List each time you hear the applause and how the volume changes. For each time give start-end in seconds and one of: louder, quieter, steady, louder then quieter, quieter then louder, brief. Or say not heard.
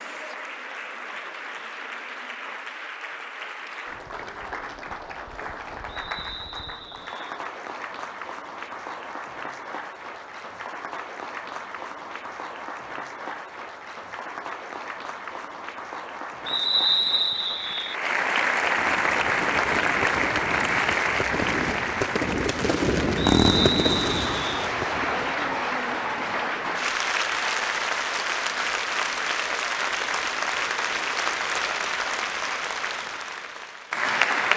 0.0-34.5 louder.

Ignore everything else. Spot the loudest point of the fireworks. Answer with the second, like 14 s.
23 s.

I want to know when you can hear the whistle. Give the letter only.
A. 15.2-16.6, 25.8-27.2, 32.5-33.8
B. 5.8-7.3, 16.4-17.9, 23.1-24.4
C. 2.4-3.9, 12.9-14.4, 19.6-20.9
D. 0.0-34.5
B.